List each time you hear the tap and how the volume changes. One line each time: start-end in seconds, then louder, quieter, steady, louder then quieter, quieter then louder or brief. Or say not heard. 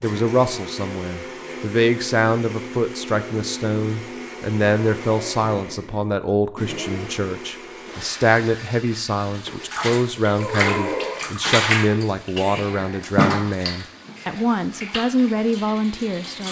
9.4-16.4 quieter.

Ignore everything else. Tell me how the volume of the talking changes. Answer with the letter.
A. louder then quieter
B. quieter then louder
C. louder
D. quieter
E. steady
E.